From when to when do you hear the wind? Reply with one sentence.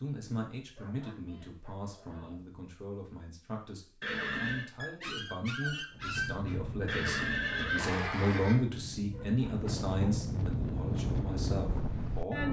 You can hear the wind from 5.9 to 12.4 s.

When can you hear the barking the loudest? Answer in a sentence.
The loudest moment of the barking is at 6 seconds.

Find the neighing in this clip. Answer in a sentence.
The neighing can be heard from 4.0 to 4.7 s and from 6.8 to 8.6 s.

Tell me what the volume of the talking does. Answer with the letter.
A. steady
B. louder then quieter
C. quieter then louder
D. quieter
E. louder
B.